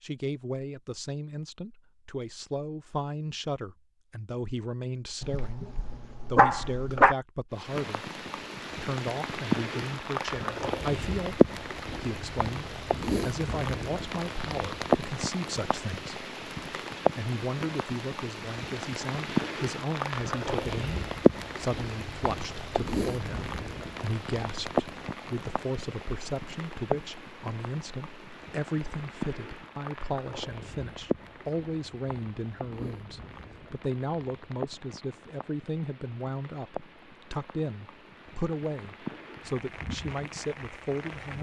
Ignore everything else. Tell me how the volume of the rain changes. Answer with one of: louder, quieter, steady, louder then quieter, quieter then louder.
quieter.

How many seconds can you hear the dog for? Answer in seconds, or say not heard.
2 s.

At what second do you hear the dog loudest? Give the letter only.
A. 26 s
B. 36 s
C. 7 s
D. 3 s
C.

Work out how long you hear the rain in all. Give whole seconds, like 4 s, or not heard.
34 s.